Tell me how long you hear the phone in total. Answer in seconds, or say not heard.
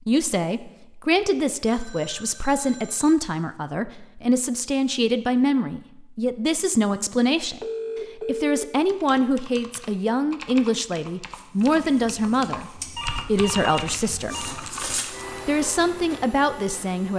5 s.